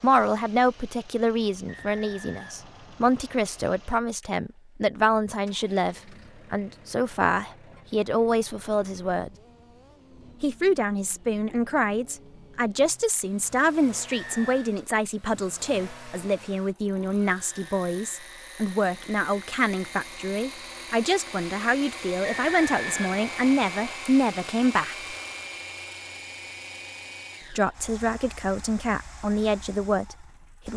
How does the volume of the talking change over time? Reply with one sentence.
The loudness of the talking stays about the same.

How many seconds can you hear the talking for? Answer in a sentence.
You can hear the talking for 27 seconds altogether.